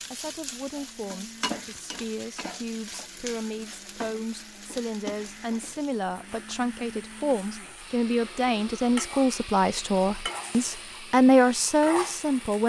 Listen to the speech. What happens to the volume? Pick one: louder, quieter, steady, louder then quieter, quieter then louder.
louder.